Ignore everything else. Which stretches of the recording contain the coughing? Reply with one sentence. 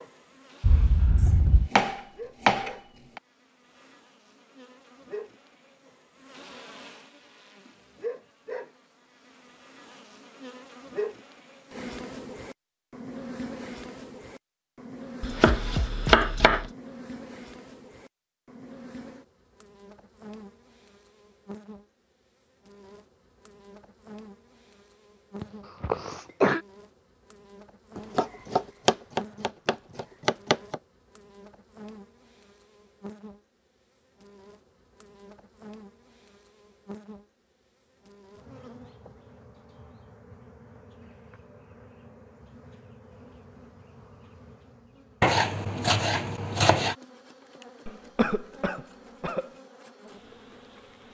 The coughing can be heard from 0.6 to 1.7 s, from 25.4 to 26.6 s and from 47.9 to 49.5 s.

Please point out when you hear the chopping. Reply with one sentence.
You can hear the chopping from 1.1 to 3.2 s, from 15.2 to 16.7 s, from 27.9 to 30.8 s and from 45.2 to 47.0 s.